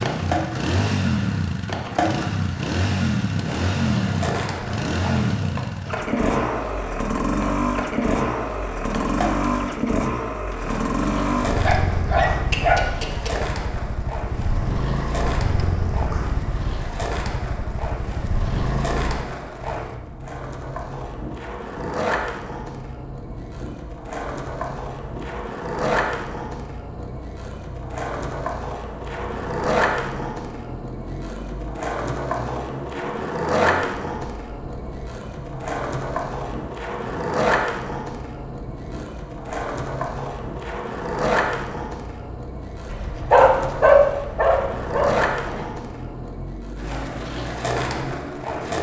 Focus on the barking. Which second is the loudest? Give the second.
44 s.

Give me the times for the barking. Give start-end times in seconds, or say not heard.
11.7-13.4, 42.9-45.5.